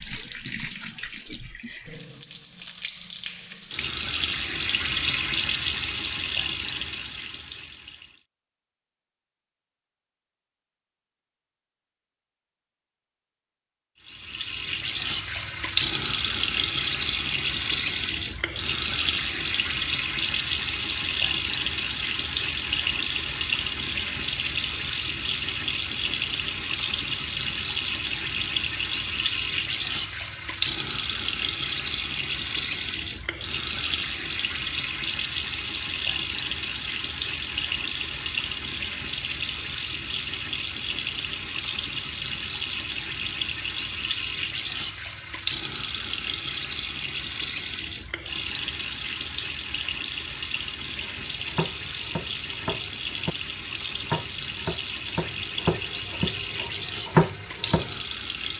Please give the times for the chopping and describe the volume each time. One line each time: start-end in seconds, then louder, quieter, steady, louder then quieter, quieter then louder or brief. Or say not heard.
51.0-58.0 louder.